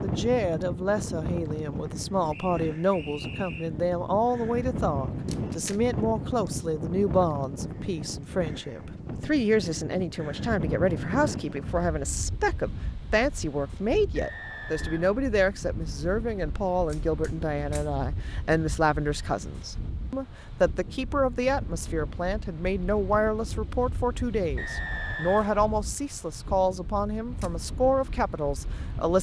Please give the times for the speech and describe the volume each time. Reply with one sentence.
The speech can be heard from 0.0 to 29.1 s, at a steady volume.